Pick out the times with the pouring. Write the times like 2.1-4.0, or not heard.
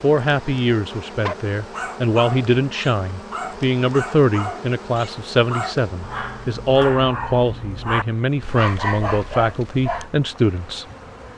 not heard.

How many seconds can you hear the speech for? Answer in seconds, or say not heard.
11 s.